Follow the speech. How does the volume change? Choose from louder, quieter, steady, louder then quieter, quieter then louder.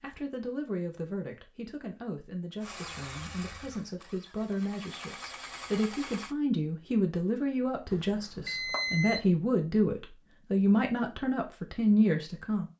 louder.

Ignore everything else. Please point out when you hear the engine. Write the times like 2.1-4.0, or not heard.
2.6-6.3.